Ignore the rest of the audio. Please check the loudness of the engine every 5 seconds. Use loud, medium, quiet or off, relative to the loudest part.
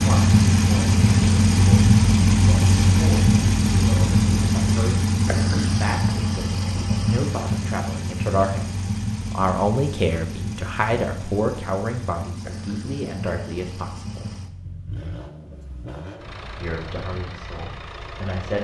loud, medium, quiet, quiet.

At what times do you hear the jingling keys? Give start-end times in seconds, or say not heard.
not heard.